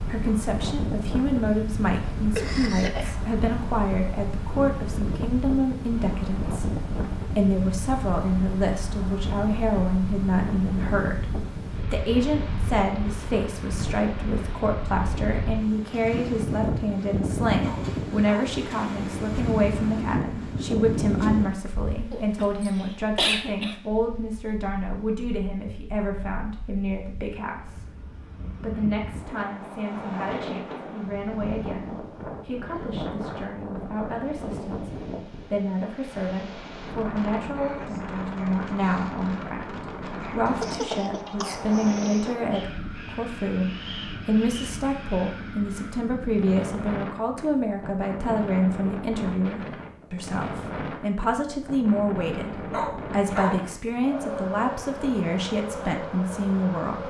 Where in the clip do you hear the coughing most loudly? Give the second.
23 s.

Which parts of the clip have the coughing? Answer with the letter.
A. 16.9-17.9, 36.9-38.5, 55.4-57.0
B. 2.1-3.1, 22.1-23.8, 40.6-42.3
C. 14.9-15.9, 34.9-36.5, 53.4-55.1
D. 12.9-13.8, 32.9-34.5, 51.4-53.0
B.